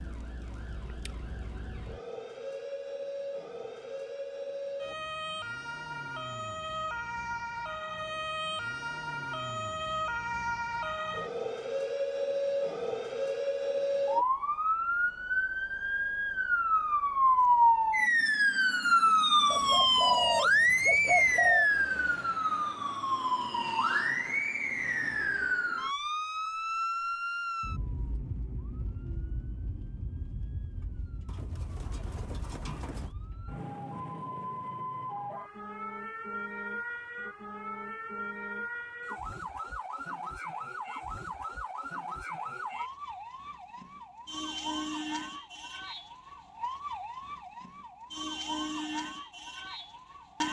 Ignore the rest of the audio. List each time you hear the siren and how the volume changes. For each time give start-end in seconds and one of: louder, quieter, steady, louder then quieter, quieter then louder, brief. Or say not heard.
0.0-50.4 louder then quieter.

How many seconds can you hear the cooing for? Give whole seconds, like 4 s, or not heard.
4 s.